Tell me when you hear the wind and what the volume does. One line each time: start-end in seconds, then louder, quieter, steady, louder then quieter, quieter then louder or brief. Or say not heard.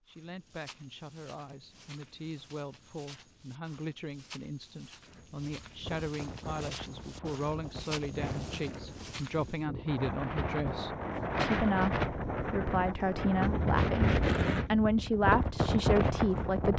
5.0-16.7 louder.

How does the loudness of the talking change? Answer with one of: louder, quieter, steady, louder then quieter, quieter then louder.
louder.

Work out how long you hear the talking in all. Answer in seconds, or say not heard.
17 s.